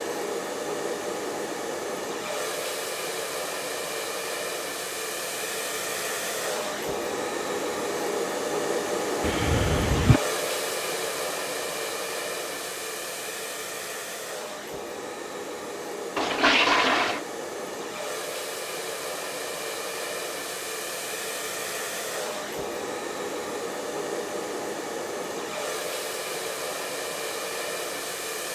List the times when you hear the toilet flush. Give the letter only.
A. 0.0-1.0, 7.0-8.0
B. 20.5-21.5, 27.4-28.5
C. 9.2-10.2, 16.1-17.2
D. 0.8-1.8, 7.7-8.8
C.